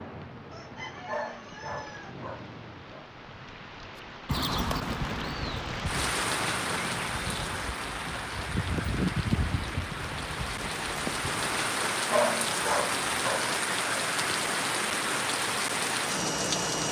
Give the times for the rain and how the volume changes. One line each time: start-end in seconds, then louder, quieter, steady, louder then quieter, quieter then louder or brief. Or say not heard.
0.0-16.8 louder.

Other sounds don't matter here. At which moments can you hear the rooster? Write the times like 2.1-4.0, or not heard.
0.5-2.2.